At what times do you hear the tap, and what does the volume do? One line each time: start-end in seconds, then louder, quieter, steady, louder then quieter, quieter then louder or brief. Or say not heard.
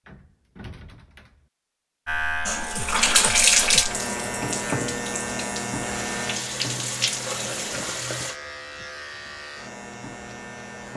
2.5-8.3 quieter then louder.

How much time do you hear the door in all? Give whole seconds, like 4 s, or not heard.
2 s.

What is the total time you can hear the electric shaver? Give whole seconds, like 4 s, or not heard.
9 s.